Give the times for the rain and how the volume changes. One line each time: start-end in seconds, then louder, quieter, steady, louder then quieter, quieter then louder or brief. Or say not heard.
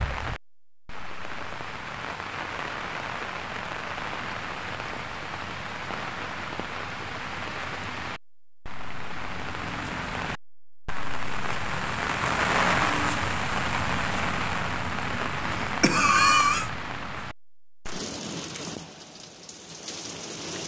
0.0-20.6 louder then quieter.